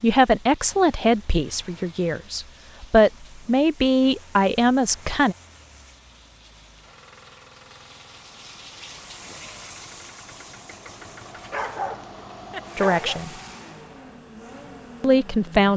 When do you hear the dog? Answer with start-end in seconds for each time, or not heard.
11.4-13.2.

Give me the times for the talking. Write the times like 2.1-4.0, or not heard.
0.0-5.3, 12.8-13.3, 15.0-15.7.